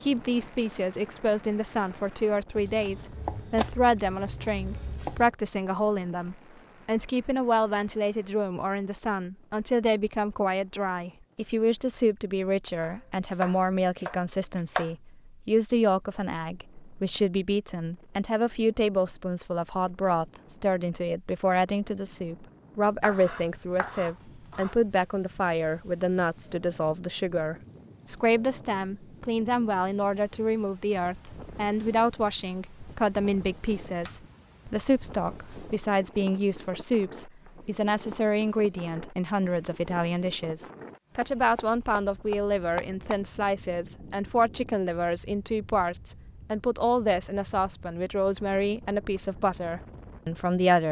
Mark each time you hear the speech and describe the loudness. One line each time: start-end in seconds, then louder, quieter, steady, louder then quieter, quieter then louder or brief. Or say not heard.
0.0-50.8 steady.